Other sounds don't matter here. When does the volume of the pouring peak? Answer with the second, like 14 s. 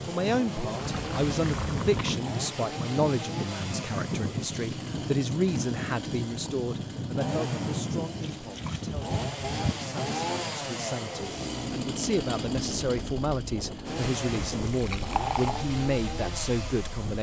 15 s.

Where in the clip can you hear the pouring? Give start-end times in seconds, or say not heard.
0.8-2.2, 8.2-9.6, 14.7-15.7.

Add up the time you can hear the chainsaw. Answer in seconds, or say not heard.
17 s.